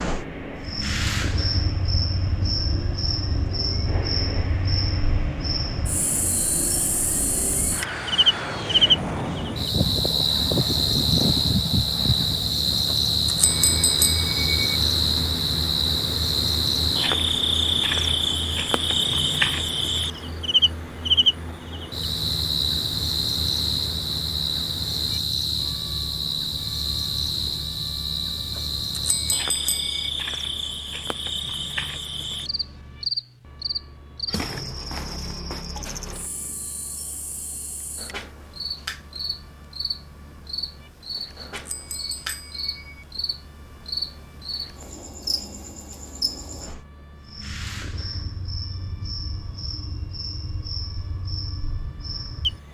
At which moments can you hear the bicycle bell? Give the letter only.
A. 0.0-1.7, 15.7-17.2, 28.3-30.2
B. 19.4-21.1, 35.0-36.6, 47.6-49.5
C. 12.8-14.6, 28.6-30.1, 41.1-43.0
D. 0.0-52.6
C.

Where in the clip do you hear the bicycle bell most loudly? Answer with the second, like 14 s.
14 s.